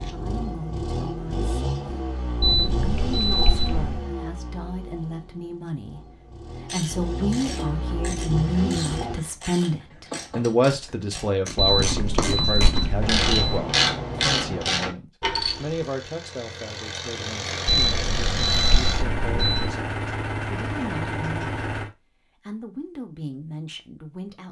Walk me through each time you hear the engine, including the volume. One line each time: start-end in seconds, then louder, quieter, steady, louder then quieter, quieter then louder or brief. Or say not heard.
0.0-9.2 quieter then louder
15.3-21.9 louder.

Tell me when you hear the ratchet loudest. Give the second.
14 s.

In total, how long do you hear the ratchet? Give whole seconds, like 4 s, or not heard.
9 s.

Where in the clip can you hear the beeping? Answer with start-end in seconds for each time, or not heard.
2.4-4.0, 11.6-13.6, 17.6-19.7.